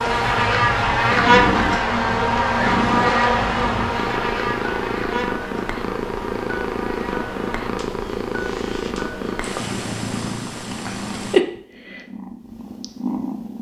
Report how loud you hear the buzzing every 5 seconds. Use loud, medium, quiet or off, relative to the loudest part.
loud, quiet, off.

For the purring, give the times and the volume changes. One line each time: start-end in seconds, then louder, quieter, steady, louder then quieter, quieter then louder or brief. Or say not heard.
0.0-13.5 steady.